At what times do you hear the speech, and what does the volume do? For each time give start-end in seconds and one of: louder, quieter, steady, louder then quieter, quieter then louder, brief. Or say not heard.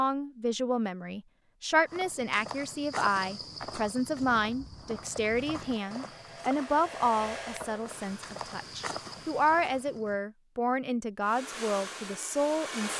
0.0-12.9 steady.